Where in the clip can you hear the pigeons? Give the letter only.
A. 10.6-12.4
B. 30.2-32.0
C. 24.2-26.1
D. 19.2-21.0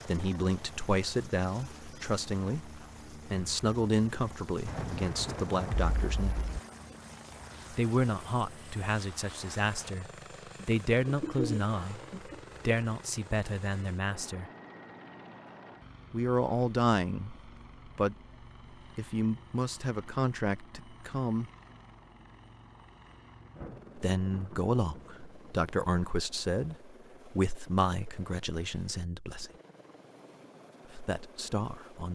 A.